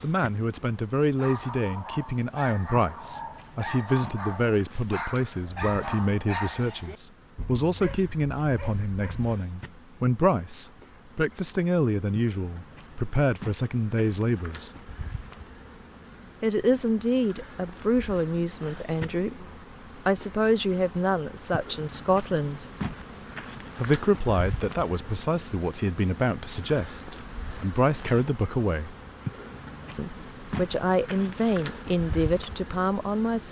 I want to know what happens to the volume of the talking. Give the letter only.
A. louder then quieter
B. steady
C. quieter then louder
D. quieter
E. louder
B.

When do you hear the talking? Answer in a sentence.
You can hear the talking from 0.0 to 14.7 s, from 16.4 to 22.6 s, from 23.8 to 28.9 s and from 29.9 to 33.4 s.